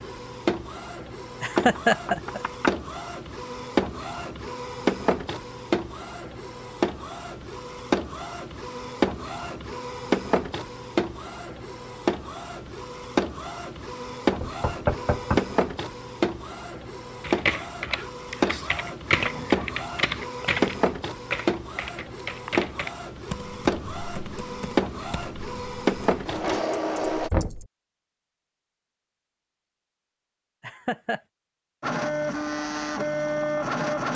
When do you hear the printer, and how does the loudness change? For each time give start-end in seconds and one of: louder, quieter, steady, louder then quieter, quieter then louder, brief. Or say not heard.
0.0-27.3 steady
31.8-34.1 brief.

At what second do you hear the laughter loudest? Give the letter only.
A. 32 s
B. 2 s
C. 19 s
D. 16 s
B.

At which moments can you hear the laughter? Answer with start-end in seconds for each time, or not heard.
1.4-2.4, 30.6-31.2.